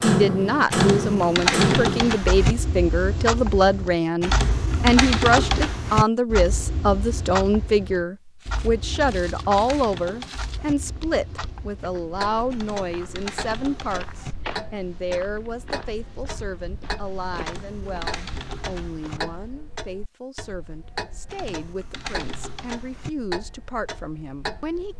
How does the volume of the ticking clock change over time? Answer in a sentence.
The volume of the ticking clock goes down.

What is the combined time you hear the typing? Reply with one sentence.
You can hear the typing for 11 seconds altogether.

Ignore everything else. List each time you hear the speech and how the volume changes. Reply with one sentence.
The speech can be heard from 0.0 to 24.9 s, getting quieter.